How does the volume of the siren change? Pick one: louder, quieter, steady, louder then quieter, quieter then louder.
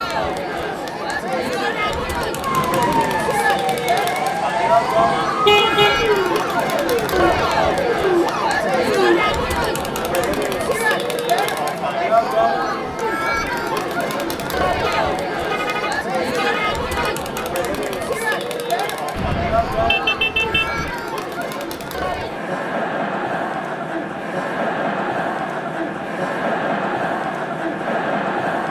steady.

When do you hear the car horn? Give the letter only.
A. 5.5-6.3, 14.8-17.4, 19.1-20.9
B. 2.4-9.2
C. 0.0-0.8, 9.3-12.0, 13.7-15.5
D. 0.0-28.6
A.